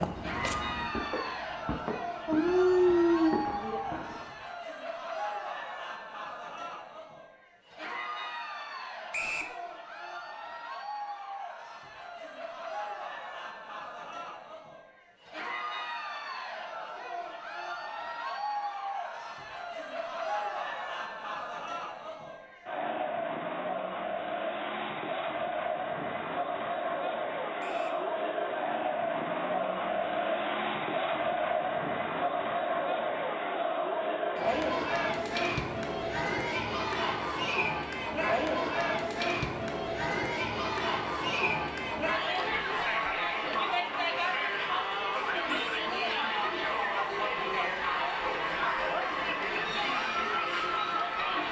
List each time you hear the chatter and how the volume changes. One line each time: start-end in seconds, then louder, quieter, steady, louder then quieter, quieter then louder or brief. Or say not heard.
0.1-51.4 louder.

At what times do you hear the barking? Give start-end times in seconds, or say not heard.
2.2-3.8.